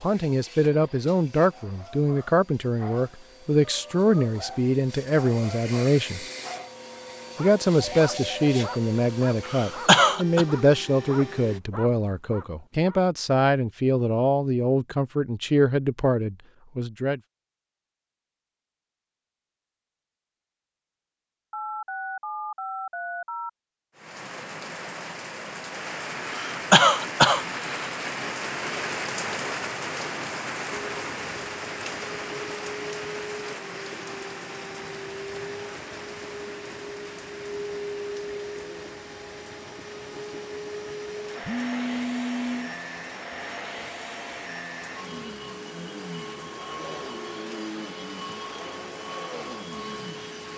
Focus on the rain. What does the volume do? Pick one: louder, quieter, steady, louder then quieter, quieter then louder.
quieter.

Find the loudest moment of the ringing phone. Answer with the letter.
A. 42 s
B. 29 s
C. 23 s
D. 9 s
A.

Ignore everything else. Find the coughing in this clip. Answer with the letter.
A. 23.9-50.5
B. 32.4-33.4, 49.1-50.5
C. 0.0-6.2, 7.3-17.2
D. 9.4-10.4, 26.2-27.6
D.